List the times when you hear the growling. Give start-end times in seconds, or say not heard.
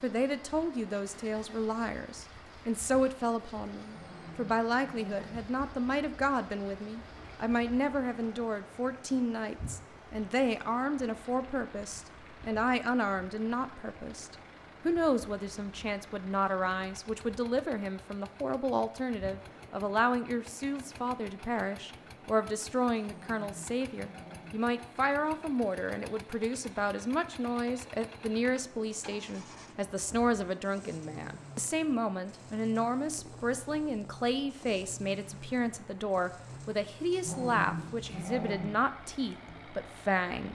3.8-5.5, 22.9-24.6, 37.1-38.8.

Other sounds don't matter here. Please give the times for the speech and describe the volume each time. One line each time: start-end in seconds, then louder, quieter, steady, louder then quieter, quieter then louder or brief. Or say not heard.
0.0-40.5 steady.